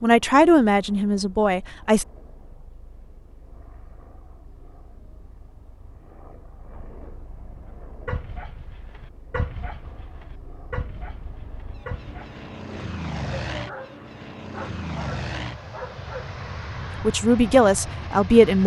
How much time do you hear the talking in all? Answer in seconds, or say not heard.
4 s.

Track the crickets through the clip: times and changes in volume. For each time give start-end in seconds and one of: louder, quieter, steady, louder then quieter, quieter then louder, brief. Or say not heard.
not heard.